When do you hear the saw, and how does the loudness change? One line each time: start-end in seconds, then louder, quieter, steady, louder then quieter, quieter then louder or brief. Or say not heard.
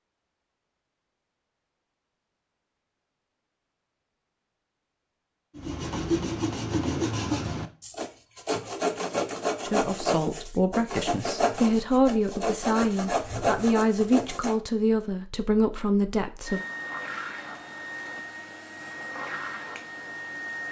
5.5-14.6 steady.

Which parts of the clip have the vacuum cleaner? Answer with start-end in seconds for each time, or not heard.
16.4-20.6.